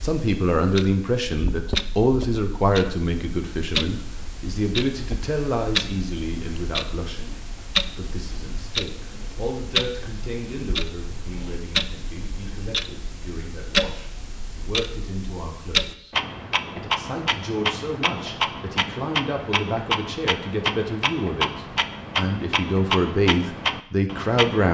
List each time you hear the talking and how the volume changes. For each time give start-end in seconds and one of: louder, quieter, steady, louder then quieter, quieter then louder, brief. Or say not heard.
0.0-16.1 quieter
16.8-24.7 louder.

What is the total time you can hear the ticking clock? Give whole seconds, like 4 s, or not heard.
25 s.